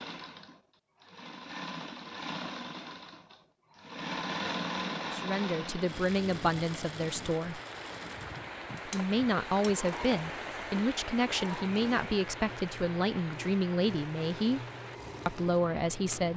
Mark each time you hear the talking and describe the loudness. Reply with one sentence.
The talking can be heard briefly from 5.0 to 7.6 s; from 8.8 to 14.6 s, at a steady volume; and briefly from 15.2 to 16.3 s.